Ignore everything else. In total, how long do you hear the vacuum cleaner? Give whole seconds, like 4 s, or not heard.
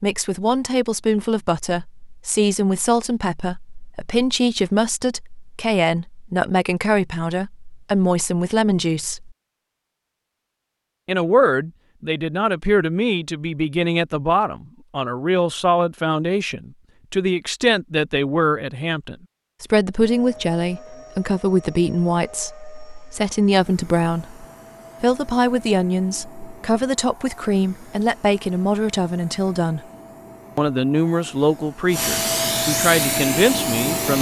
14 s.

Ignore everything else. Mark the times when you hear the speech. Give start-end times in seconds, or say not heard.
0.0-9.3, 11.1-29.8, 30.6-34.1.